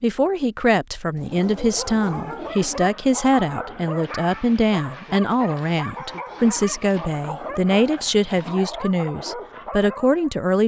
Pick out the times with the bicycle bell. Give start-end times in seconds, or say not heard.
not heard.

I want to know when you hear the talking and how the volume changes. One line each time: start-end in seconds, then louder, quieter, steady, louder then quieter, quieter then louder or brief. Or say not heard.
0.0-10.6 steady.